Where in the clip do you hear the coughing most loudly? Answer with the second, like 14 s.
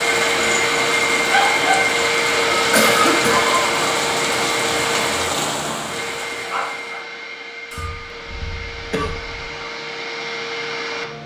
3 s.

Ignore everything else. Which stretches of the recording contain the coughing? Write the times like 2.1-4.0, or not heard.
2.7-3.6, 7.7-9.6.